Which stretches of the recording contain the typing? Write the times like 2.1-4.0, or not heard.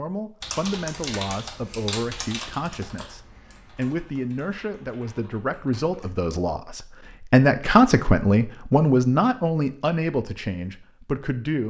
0.4-6.1.